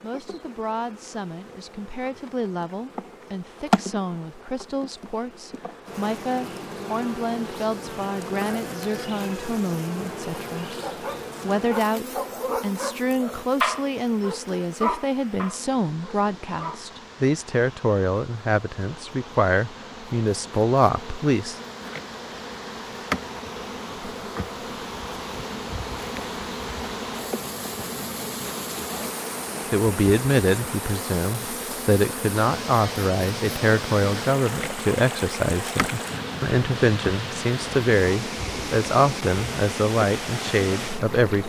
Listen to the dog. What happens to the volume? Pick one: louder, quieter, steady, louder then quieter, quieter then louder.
louder then quieter.